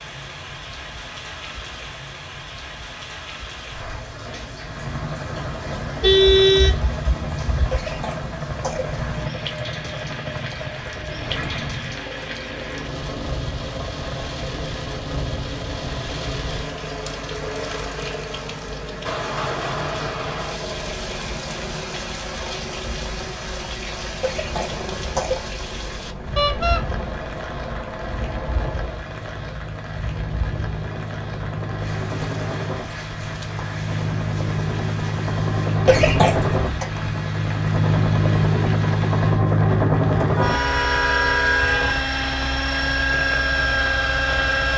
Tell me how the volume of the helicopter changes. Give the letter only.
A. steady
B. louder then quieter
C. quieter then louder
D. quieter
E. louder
E.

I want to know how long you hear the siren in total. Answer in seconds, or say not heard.
not heard.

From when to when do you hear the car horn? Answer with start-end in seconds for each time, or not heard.
6.0-7.8, 26.4-26.8, 40.4-42.0.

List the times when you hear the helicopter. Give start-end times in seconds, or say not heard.
4.5-44.7.